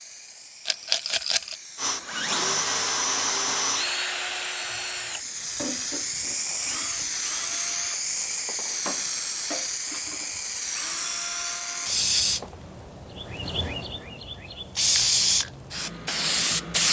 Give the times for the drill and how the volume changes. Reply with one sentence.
The drill can be heard from 1.8 to 12.6 s, getting quieter.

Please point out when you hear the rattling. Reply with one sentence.
You can hear the rattling from 0.7 to 1.6 s.